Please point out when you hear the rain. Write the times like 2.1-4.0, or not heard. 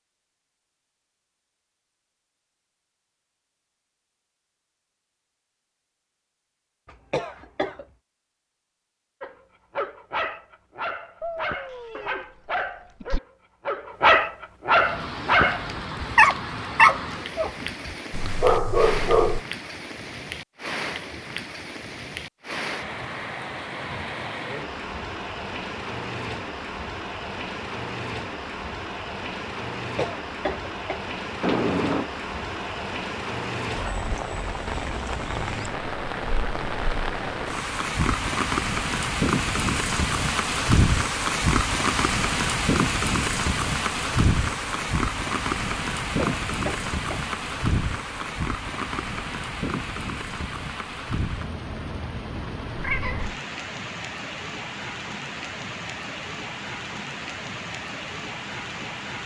14.7-59.2.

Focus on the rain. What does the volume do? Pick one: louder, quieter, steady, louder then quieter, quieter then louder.
louder then quieter.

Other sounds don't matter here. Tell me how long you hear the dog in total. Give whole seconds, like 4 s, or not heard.
10 s.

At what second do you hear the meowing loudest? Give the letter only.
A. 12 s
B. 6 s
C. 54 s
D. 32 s
D.